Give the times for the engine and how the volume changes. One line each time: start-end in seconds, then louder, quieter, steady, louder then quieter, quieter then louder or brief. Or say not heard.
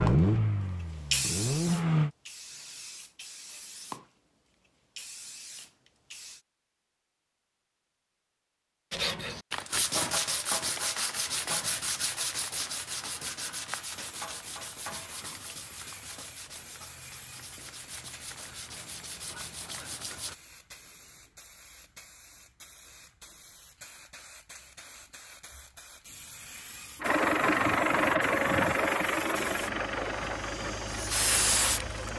0.0-2.1 brief
27.0-32.1 quieter.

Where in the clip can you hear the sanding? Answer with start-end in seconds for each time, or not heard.
8.9-20.4.